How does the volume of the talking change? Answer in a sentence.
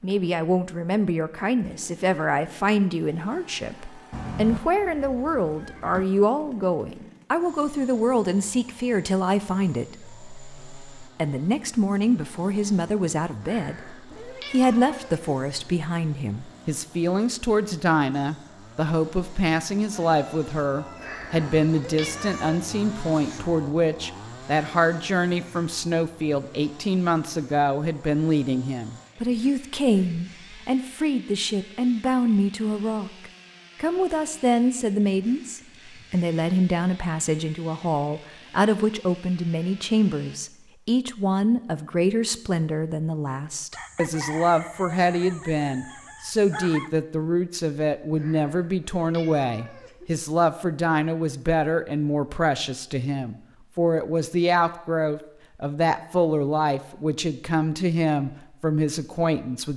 The volume of the talking stays about the same.